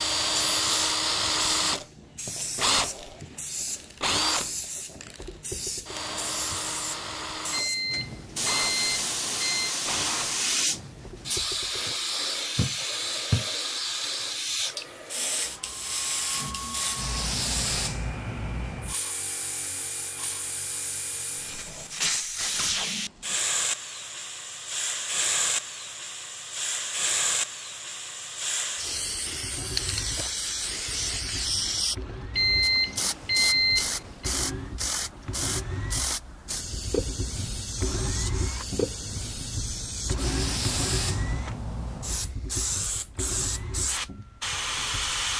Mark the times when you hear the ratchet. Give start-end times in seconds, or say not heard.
not heard.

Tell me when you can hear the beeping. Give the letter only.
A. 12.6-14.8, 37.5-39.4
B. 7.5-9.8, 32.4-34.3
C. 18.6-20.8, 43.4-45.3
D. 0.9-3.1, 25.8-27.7
B.